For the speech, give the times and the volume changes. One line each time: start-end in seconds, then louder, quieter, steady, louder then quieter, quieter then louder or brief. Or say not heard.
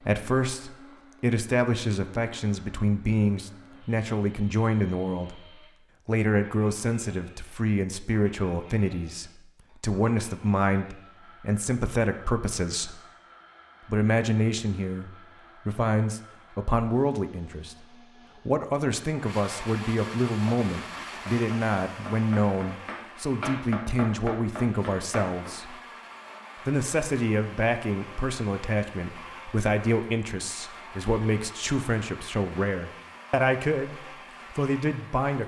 0.0-13.0 steady
13.8-25.8 steady
26.6-35.4 steady.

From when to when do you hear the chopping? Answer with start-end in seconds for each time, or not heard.
20.4-25.6.